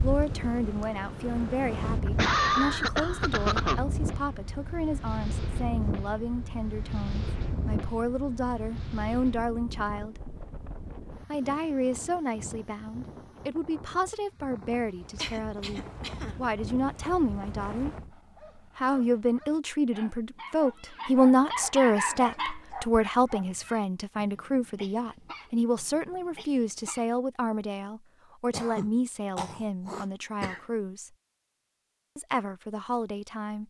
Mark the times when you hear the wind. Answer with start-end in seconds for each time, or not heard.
0.0-18.1.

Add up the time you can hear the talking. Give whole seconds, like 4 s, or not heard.
31 s.